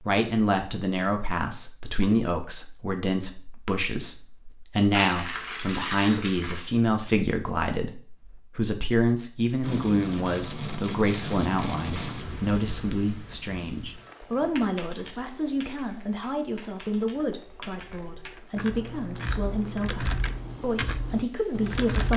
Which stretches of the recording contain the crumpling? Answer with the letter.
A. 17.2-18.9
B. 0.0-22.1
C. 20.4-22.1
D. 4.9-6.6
D.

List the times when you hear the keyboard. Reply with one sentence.
The keyboard can be heard from 14.5 to 22.1 s.